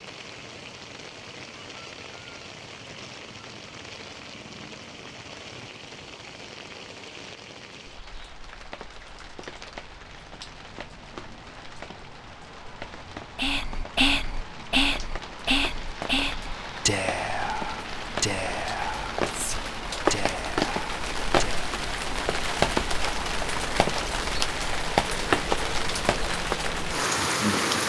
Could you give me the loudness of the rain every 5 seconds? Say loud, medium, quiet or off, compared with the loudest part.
quiet, quiet, quiet, medium, loud, loud.